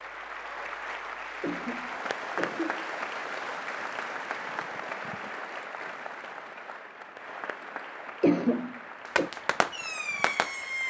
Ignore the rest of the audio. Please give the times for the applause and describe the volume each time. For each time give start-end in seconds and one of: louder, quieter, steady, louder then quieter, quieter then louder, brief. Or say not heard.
0.0-10.8 quieter.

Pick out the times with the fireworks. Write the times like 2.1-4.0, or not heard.
9.2-10.8.